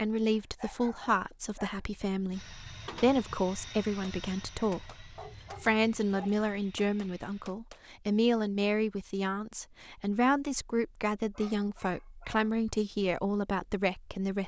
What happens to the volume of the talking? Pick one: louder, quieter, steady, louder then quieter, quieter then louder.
steady.